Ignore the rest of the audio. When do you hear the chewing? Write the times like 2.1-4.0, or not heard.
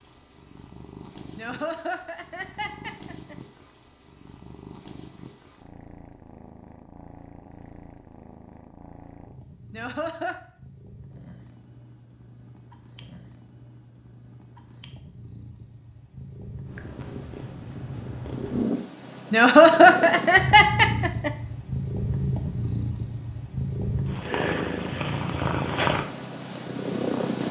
not heard.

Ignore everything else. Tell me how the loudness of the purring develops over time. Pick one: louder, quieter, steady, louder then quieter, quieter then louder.
louder.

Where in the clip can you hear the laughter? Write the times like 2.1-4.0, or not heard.
1.4-3.4, 9.7-10.4, 19.3-21.3.